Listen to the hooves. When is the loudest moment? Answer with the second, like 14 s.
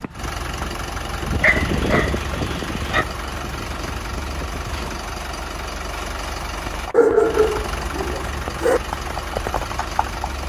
2 s.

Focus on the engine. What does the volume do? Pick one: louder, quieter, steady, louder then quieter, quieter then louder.
steady.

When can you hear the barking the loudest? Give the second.
7 s.